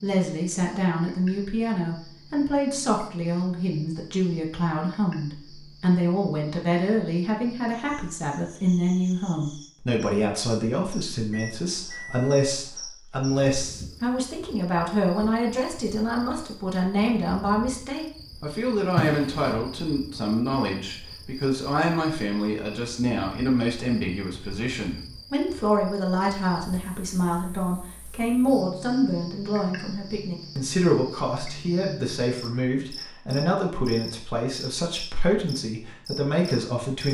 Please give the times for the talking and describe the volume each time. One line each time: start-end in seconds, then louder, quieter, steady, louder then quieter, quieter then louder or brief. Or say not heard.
0.0-37.0 steady.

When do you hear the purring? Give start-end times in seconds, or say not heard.
not heard.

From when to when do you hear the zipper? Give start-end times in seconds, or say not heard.
18.9-19.6.